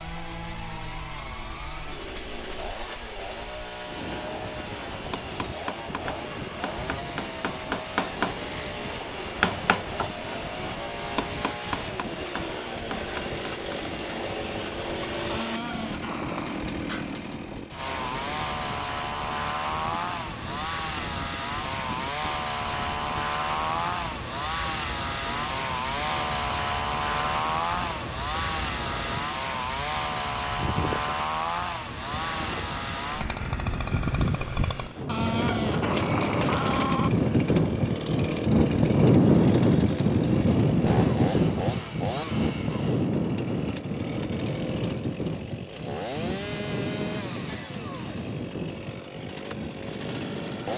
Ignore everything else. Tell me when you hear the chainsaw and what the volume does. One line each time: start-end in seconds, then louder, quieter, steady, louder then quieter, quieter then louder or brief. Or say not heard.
0.0-50.7 louder then quieter.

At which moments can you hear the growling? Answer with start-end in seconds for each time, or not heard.
15.2-16.6, 35.0-37.1.